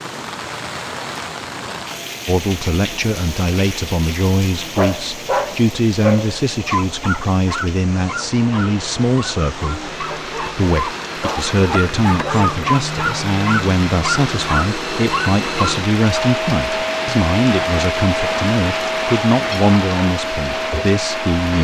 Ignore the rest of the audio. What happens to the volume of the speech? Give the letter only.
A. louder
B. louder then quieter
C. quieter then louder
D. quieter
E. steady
E.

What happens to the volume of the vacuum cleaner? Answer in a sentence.
The volume of the vacuum cleaner goes up.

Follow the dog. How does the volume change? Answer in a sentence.
The volume of the dog goes down, then up.